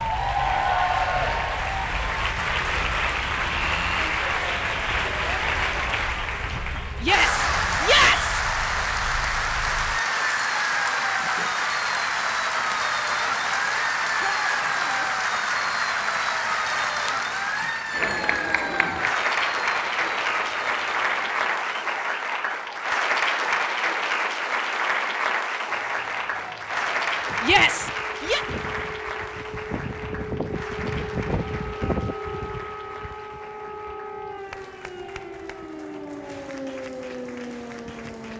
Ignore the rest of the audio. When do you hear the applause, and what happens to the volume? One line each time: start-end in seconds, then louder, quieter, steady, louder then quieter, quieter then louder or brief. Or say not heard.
0.0-38.3 quieter.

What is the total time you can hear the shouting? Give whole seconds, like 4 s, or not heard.
3 s.